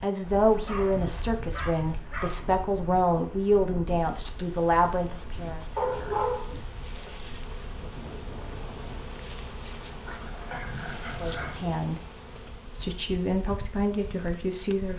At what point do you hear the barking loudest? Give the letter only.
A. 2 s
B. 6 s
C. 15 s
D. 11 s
B.